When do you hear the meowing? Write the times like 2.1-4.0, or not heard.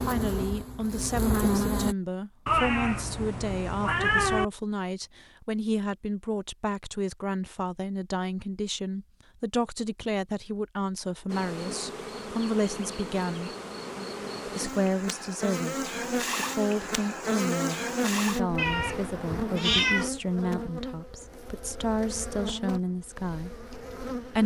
2.5-4.5, 18.6-20.1.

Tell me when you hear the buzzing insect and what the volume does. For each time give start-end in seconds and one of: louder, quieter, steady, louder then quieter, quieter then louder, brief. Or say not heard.
0.0-1.9 brief
11.2-24.4 louder then quieter.